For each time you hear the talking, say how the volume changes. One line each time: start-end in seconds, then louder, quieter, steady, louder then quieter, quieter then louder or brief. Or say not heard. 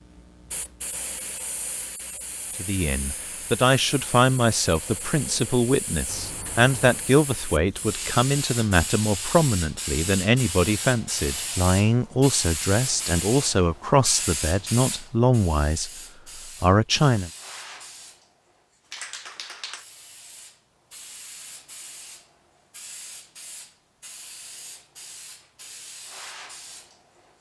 2.5-17.3 steady.